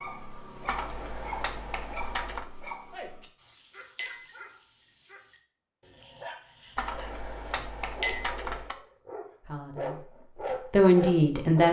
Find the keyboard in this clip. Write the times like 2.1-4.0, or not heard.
0.7-2.5, 6.8-8.8.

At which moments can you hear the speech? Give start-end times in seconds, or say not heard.
9.4-10.1, 10.7-11.6.